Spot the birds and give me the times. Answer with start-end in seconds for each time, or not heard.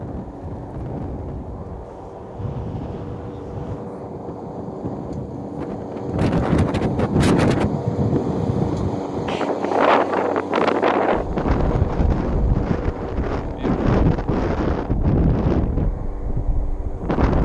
not heard.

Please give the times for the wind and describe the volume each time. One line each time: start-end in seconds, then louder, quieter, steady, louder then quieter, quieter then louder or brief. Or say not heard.
0.0-17.4 louder.